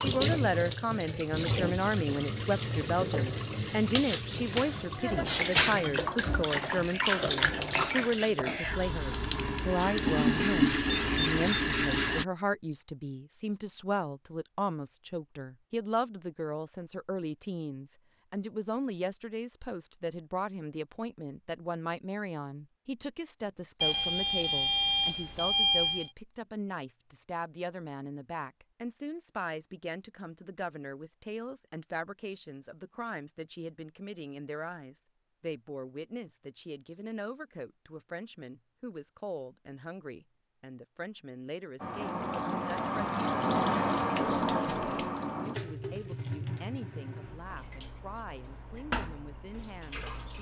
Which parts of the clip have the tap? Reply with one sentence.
The tap can be heard from 0.0 to 12.2 s and from 41.8 to 50.3 s.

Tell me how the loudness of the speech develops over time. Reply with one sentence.
The loudness of the speech goes down.